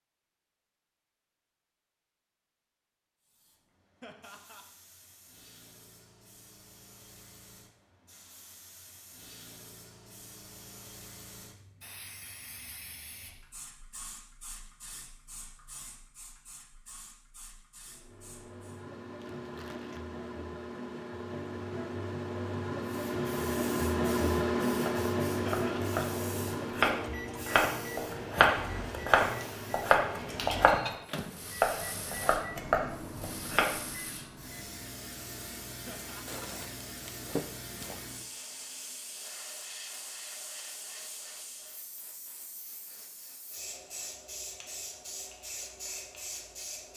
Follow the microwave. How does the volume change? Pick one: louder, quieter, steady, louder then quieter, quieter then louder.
louder then quieter.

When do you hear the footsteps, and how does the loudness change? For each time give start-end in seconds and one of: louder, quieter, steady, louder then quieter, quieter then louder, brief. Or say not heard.
not heard.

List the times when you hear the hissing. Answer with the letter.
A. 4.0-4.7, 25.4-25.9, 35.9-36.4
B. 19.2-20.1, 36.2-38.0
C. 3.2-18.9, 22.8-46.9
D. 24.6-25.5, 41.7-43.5
C.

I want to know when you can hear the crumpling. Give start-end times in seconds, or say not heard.
19.2-20.1, 36.2-38.0.